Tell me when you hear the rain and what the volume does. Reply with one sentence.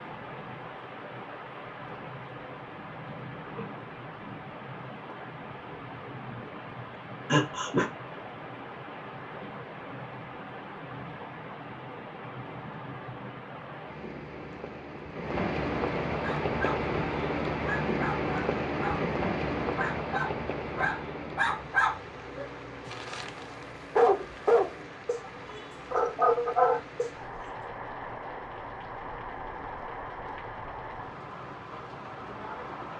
You can hear the rain from 0.0 to 32.9 s, getting louder then quieter.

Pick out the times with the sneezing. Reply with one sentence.
The sneezing can be heard from 7.3 to 7.9 s.